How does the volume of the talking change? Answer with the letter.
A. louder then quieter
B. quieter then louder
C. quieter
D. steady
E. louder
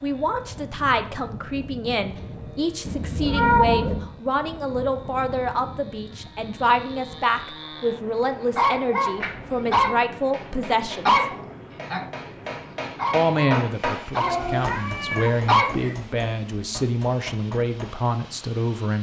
D.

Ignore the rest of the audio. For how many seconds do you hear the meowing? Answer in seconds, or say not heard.
3 s.